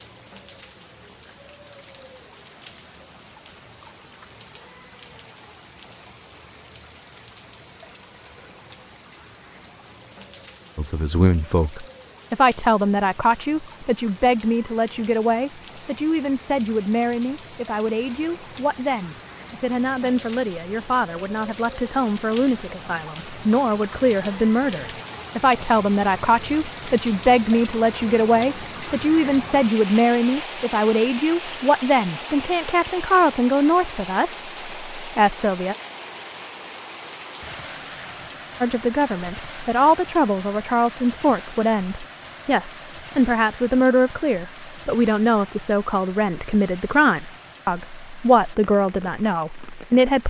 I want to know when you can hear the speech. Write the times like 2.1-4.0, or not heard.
10.8-35.8, 38.6-50.2.